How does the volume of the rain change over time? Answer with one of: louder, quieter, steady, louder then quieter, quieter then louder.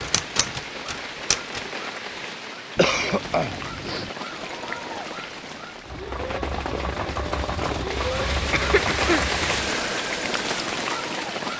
louder.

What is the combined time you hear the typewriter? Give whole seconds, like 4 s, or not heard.
2 s.